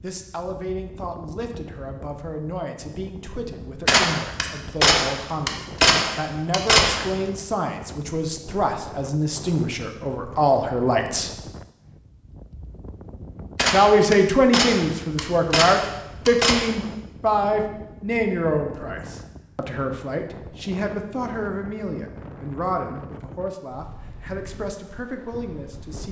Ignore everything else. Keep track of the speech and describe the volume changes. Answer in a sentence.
The loudness of the speech goes up, then down.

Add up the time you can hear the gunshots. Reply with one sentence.
You can hear the gunshots for 6 seconds altogether.